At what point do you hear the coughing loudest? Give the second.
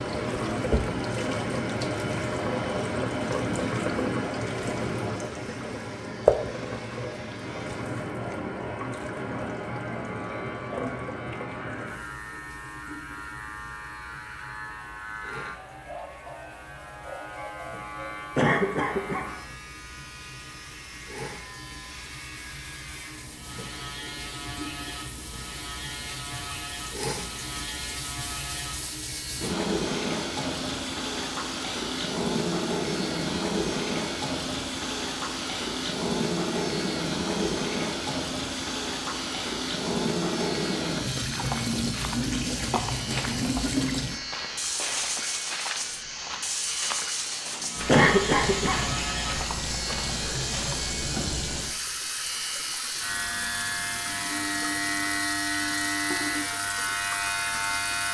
48 s.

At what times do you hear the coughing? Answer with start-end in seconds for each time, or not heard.
18.4-19.3, 47.9-48.9.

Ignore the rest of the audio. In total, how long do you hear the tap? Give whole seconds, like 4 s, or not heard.
58 s.